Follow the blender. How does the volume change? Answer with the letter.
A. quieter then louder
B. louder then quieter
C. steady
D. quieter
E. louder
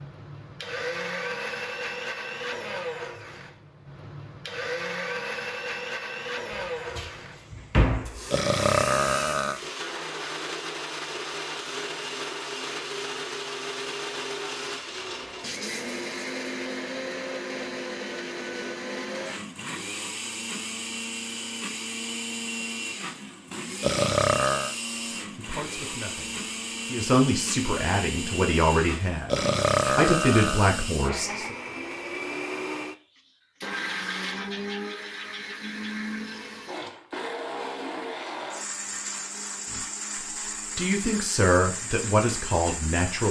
C.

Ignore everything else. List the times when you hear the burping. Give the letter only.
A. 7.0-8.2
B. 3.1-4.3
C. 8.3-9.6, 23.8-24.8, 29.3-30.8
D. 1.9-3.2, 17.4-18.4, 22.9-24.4
C.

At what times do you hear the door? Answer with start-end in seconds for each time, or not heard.
7.0-8.2.